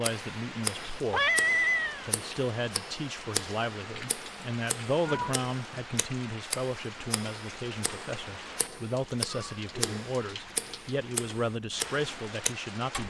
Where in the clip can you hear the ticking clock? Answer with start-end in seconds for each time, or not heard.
0.0-13.0.